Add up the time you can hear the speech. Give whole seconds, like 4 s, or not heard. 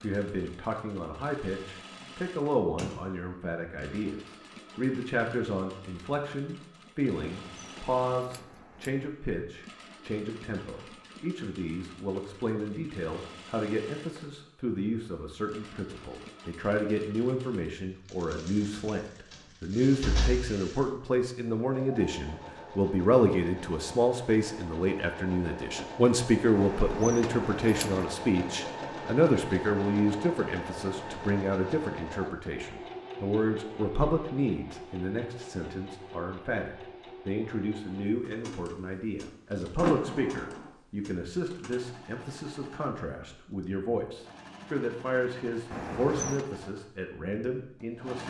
48 s.